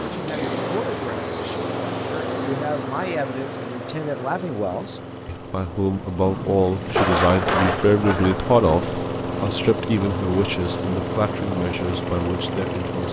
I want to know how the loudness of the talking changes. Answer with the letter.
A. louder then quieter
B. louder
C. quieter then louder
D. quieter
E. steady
A.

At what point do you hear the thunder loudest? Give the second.
7 s.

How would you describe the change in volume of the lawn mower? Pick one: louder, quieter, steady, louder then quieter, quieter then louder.
quieter then louder.